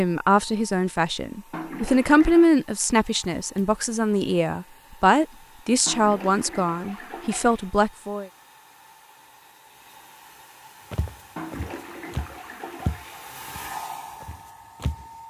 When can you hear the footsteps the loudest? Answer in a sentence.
The loudest moment of the footsteps is at 13 seconds.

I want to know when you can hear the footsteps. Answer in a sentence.
The footsteps can be heard from 10.9 to 15.1 s.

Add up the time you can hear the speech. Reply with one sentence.
The speech can be heard for 8 seconds in total.